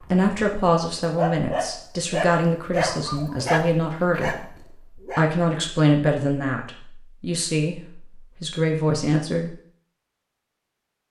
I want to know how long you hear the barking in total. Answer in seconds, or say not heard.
5 s.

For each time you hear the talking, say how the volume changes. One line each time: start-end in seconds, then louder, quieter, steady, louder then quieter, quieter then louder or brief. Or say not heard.
0.0-9.6 steady.